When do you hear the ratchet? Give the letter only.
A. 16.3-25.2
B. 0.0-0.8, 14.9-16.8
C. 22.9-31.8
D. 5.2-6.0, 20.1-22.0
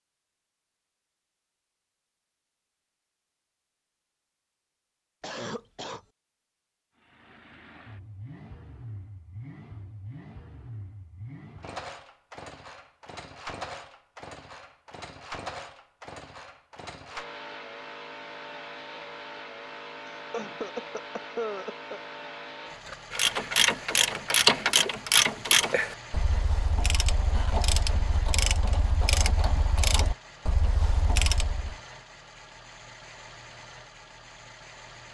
C.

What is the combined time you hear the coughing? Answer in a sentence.
You can hear the coughing for 3 seconds altogether.